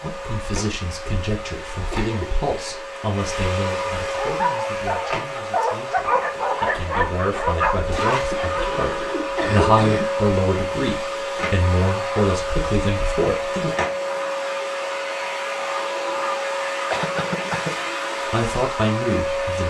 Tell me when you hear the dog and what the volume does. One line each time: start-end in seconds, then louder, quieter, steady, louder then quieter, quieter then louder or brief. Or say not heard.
4.0-8.8 steady.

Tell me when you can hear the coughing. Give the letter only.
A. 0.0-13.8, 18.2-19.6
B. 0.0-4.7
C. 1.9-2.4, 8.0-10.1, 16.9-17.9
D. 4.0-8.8
C.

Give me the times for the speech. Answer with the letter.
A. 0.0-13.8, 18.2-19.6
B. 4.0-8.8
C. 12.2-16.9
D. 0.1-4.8
A.